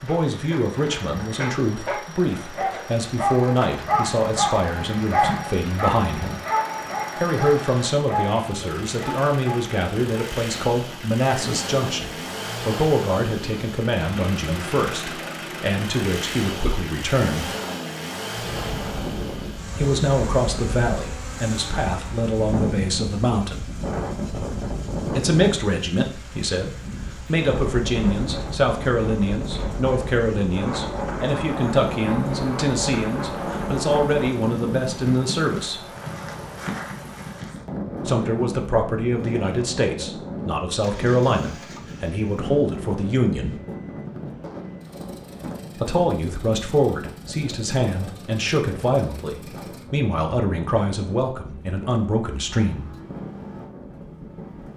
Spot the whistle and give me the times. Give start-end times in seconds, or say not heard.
not heard.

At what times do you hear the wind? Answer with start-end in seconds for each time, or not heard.
18.4-54.7.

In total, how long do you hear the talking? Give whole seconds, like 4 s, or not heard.
44 s.